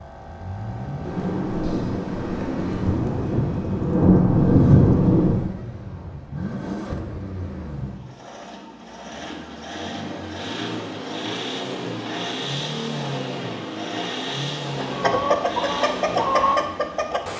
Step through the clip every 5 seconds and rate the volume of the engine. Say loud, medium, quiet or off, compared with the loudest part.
loud, medium, loud, loud.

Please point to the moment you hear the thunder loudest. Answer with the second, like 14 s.
5 s.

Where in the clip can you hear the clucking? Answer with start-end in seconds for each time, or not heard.
14.7-17.2.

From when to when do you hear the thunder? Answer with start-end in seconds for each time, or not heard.
1.1-5.5.